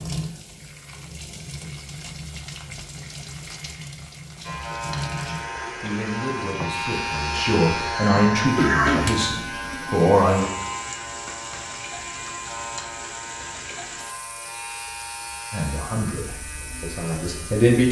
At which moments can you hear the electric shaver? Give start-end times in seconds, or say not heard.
4.4-17.8.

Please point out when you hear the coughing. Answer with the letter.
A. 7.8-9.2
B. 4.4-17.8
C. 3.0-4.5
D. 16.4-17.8
A.